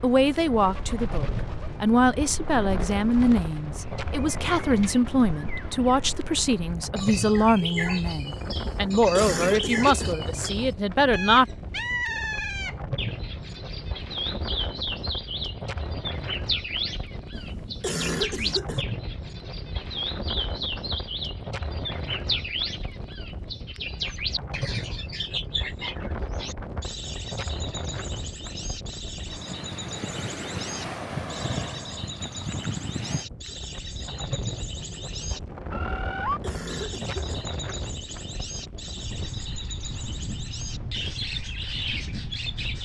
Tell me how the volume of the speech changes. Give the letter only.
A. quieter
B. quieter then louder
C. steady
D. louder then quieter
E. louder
C.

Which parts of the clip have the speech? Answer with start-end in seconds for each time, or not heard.
0.0-11.4.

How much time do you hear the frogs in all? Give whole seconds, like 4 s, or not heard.
not heard.